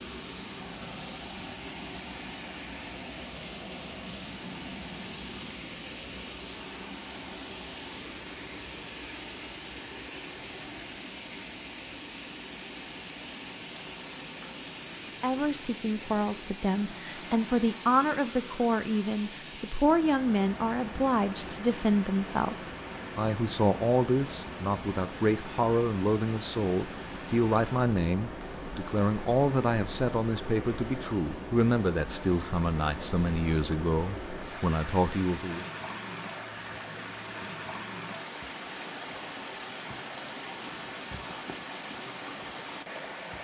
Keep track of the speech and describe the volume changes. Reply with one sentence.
The volume of the speech stays about the same.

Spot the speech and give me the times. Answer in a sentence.
The speech can be heard from 15.2 to 35.7 s.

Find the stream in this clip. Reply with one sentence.
You can hear the stream from 0.0 to 43.3 s.